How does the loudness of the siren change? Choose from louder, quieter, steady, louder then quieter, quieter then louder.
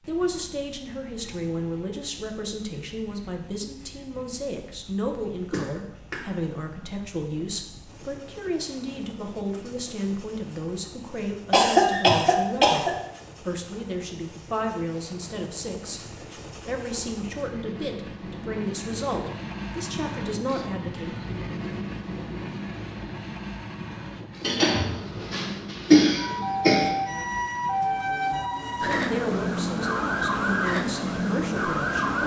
steady.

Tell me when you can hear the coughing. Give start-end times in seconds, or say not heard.
5.5-6.2, 11.5-12.9, 24.4-26.9.